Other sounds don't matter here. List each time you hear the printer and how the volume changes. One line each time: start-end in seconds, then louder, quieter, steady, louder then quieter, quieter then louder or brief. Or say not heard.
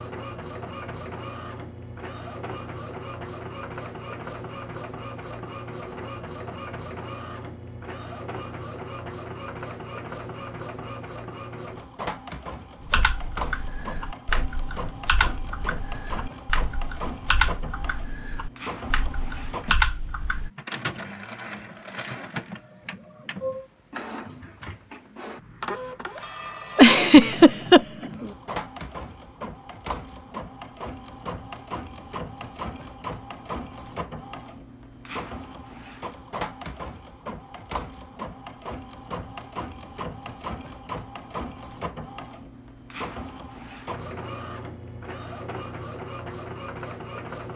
0.0-47.5 steady.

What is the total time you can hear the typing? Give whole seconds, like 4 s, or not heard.
8 s.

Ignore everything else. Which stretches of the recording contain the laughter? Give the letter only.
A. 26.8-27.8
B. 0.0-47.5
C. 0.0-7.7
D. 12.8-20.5
A.